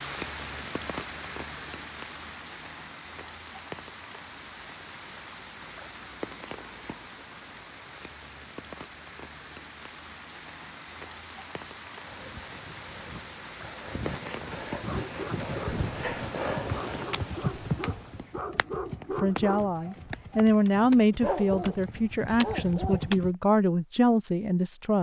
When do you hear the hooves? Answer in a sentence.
The hooves can be heard from 12.1 to 23.4 s.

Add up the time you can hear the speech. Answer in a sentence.
The speech can be heard for 6 seconds in total.